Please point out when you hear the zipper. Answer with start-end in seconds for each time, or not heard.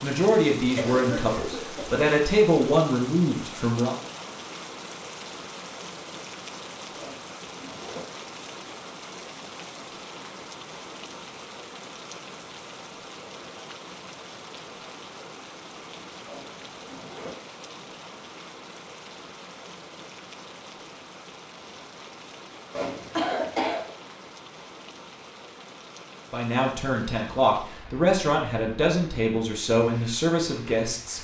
7.0-8.2, 16.2-17.4, 22.7-23.4.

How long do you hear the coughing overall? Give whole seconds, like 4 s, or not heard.
2 s.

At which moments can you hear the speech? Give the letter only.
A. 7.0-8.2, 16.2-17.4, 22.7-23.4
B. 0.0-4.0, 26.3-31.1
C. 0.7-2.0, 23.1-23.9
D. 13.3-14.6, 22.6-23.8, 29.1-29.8
B.